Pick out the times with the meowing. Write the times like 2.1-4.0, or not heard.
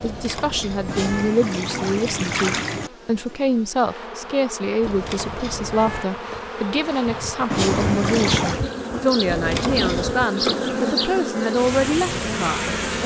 0.0-1.4, 4.8-6.1, 9.2-10.2.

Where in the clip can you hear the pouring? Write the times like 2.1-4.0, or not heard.
0.8-2.9, 7.5-8.7.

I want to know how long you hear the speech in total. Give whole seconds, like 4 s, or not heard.
13 s.